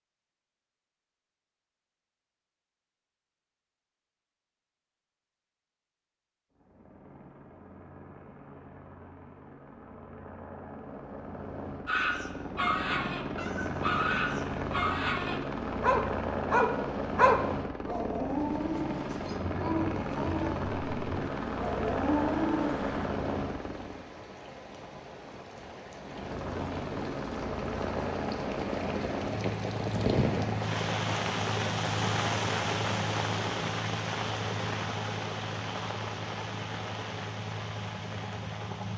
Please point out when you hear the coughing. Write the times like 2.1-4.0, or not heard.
not heard.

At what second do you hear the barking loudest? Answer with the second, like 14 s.
17 s.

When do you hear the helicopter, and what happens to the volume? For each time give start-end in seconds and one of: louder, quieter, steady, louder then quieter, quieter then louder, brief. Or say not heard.
6.5-24.1 louder
26.0-38.9 quieter.